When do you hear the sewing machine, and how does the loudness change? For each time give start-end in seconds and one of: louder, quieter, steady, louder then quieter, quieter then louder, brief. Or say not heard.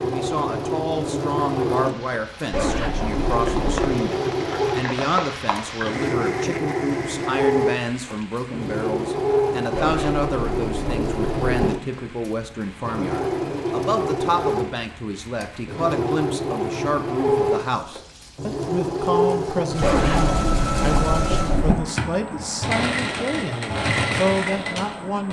0.0-25.2 steady.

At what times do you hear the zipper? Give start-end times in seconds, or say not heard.
2.5-4.0, 9.8-11.7, 19.8-21.8.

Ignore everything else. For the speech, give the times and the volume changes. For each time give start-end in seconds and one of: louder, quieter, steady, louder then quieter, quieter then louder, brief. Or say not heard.
0.0-25.2 steady.